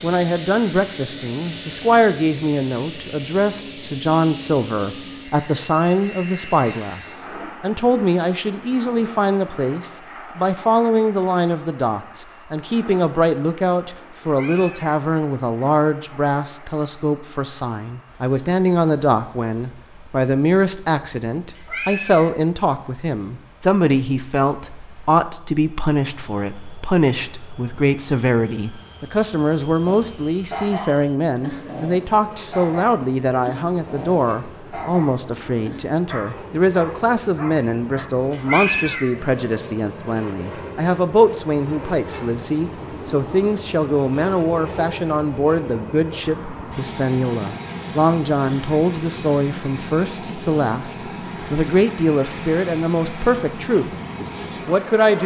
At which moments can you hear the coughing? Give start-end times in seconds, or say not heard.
not heard.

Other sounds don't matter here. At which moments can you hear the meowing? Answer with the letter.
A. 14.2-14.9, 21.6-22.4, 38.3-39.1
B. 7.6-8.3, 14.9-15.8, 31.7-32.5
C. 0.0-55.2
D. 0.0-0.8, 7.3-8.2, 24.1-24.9
A.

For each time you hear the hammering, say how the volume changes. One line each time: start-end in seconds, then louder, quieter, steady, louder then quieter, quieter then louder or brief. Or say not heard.
not heard.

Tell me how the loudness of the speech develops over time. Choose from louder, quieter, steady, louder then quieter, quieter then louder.
steady.